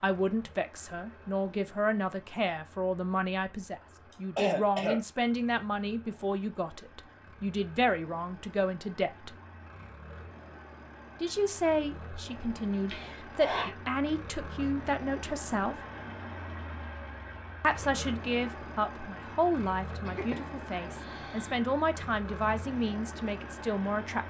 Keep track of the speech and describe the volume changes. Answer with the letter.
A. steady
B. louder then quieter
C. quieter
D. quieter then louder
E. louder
A.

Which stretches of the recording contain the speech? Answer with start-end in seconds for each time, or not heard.
0.0-9.3, 11.2-15.8, 17.6-24.2.